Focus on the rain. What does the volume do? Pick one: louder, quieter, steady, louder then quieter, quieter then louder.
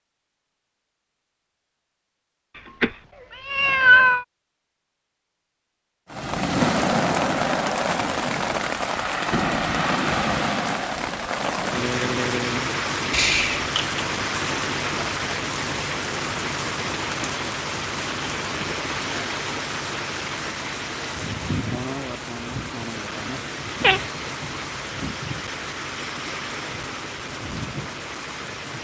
quieter.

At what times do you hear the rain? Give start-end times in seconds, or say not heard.
6.1-28.7.